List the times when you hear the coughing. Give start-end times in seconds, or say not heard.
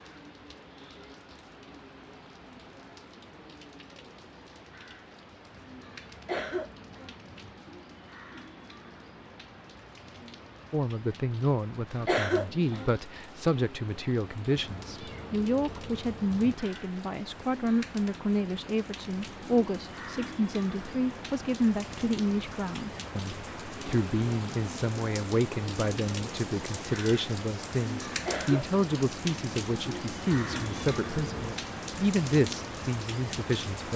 6.2-7.2, 12.1-12.9, 28.2-28.8.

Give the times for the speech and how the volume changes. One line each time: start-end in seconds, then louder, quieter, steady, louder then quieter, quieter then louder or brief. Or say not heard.
10.7-33.9 steady.